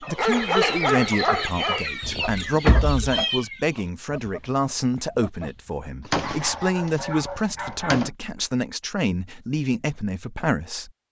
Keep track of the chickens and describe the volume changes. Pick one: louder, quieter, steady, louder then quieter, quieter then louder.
quieter.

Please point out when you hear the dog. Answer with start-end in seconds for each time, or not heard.
0.1-1.9, 6.2-8.1.